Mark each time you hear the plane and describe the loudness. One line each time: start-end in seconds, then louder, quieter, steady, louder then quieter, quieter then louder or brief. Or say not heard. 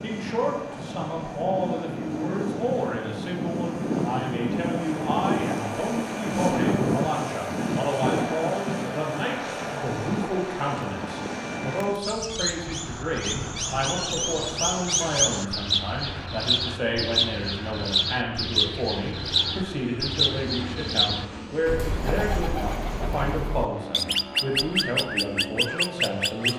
0.0-26.5 quieter.